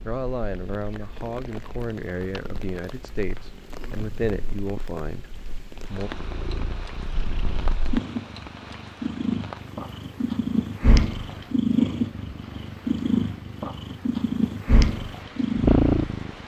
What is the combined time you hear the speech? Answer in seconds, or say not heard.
6 s.